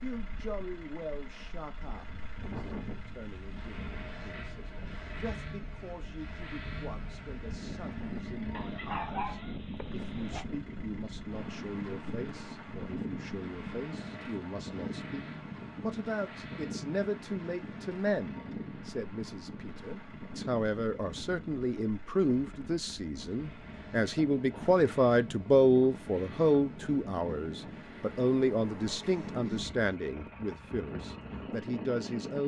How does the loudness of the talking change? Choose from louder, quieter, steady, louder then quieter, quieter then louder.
louder.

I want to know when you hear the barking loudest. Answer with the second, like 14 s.
9 s.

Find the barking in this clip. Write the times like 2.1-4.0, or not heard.
8.6-10.4.